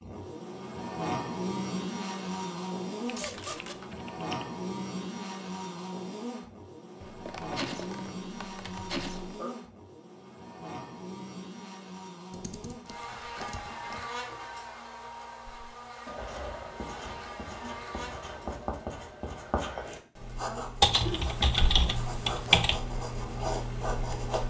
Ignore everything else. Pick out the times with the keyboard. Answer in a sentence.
The keyboard can be heard from 3.0 to 4.5 s, from 7.0 to 9.4 s, from 12.3 to 14.1 s and from 20.8 to 22.8 s.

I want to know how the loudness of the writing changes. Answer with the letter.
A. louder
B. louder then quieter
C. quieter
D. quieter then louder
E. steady
A.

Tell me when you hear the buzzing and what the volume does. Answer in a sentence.
The buzzing can be heard from 0.0 to 18.6 s, getting quieter.